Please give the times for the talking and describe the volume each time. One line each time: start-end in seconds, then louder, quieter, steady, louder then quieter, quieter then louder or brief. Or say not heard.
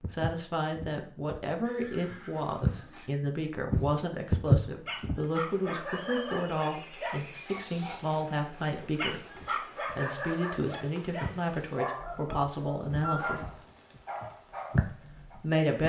0.1-13.6 steady
14.8-15.8 brief.